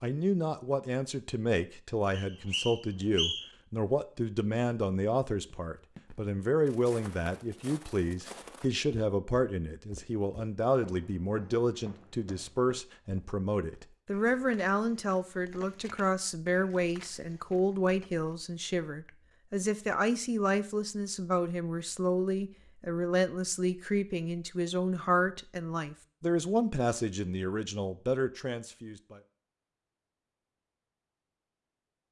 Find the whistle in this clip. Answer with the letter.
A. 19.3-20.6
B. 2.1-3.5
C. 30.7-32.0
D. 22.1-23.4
B.